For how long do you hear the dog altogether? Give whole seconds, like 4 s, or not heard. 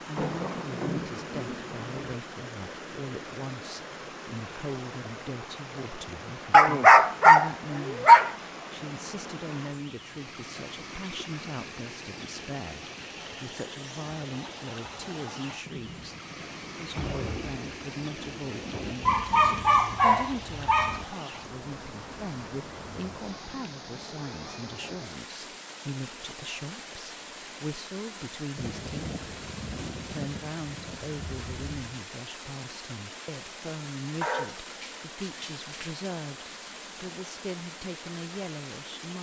6 s.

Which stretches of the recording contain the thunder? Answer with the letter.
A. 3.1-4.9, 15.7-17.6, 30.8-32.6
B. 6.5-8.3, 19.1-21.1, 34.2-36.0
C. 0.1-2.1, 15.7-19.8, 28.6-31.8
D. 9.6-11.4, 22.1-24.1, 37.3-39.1
C.